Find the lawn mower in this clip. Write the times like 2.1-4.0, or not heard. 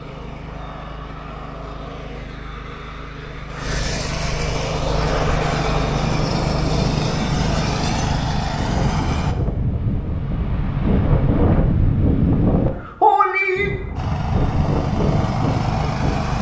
0.0-9.3, 13.9-16.3.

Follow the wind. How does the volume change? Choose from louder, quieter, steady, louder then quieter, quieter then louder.
louder then quieter.